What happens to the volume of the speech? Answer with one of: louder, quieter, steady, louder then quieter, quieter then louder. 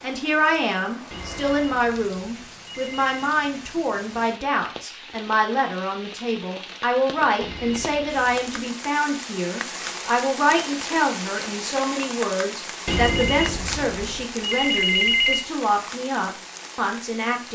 steady.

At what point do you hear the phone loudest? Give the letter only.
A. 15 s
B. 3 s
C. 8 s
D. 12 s
A.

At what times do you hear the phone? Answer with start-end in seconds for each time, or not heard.
1.1-3.1, 7.4-8.7, 12.8-15.4.